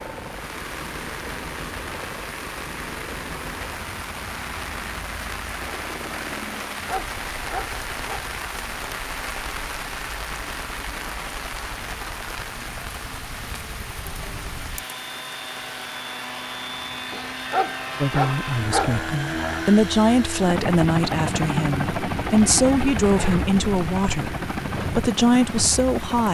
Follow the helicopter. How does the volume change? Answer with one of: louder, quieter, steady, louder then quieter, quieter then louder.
louder.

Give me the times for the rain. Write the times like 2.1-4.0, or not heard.
0.0-26.3.